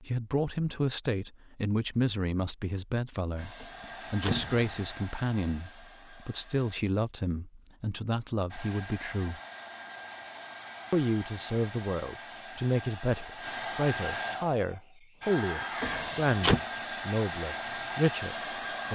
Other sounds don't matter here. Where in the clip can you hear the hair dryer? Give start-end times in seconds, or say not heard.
3.4-6.8, 8.5-18.8.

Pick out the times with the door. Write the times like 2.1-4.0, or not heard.
3.6-5.0, 15.8-16.6.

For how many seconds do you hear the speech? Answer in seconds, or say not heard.
17 s.